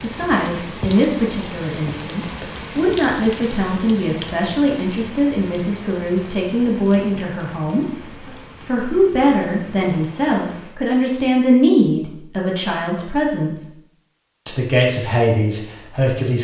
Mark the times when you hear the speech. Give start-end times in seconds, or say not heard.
0.0-7.8, 8.7-13.7, 14.4-16.3.